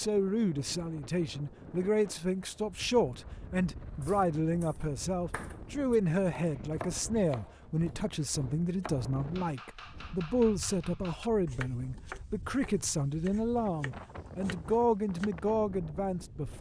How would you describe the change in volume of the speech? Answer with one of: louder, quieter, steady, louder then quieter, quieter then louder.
steady.